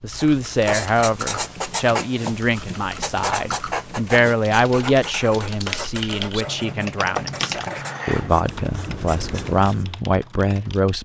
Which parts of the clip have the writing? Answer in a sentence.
You can hear the writing from 0.1 to 9.9 s.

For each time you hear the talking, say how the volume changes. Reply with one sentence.
You can hear the talking from 0.0 to 10.9 s, at a steady volume.